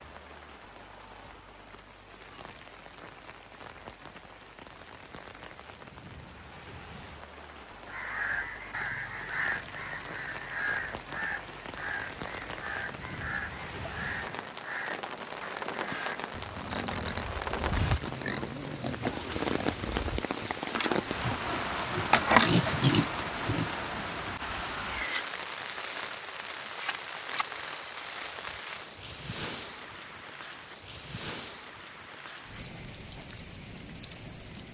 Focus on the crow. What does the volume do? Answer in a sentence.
The loudness of the crow goes down.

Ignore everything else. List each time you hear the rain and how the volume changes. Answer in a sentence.
The rain can be heard from 0.0 to 34.6 s, getting louder then quieter.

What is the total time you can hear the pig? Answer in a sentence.
The pig can be heard for 8 seconds in total.